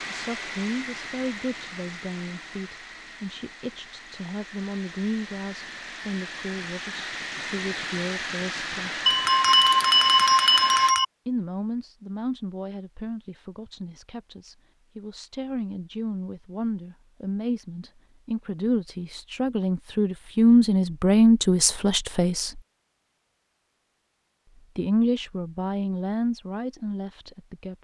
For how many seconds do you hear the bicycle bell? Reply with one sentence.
You can hear the bicycle bell for 2 seconds altogether.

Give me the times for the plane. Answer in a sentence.
You can hear the plane from 0.0 to 10.9 s.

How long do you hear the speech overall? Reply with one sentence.
You can hear the speech for 23 seconds altogether.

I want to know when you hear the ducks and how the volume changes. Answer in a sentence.
You can't hear the ducks here.